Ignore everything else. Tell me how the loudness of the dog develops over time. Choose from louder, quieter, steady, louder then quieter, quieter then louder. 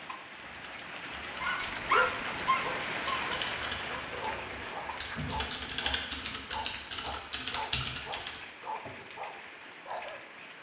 quieter.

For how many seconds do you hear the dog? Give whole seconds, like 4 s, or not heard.
9 s.